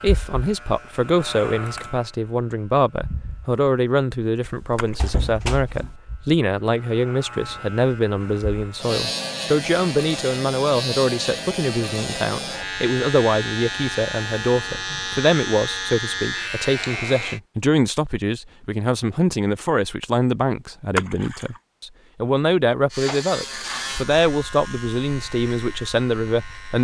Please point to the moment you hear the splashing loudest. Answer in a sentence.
The volume of the splashing peaks at 21 seconds.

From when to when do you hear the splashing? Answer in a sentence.
You can hear the splashing from 4.8 to 5.4 s and from 20.9 to 21.6 s.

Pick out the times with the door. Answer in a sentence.
The door can be heard from 4.5 to 6.0 s.